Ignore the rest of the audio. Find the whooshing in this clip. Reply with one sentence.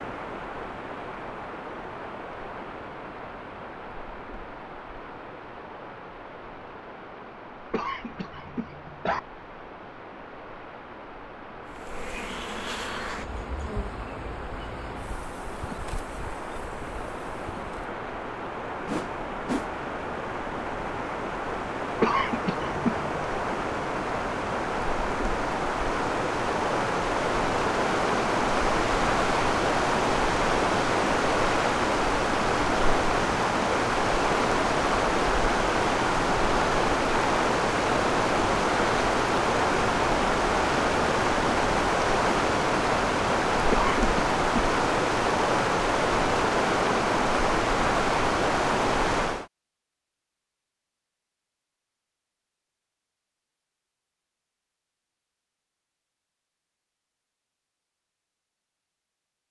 The whooshing can be heard from 18.9 to 19.7 s.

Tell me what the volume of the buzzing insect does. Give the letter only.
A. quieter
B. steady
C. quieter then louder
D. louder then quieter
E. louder
A.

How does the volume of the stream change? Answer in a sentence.
The volume of the stream goes up.